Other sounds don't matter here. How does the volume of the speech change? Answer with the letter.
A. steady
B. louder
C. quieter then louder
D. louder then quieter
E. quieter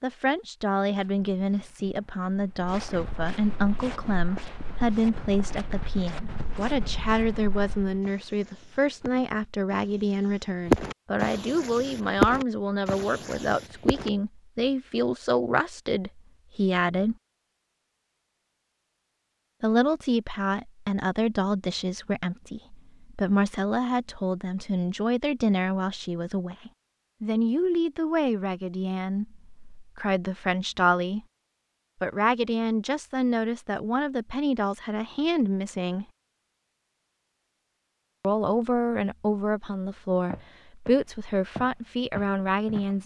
A.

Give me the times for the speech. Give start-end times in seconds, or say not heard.
0.0-17.1, 19.6-31.2, 32.0-36.0, 38.2-43.0.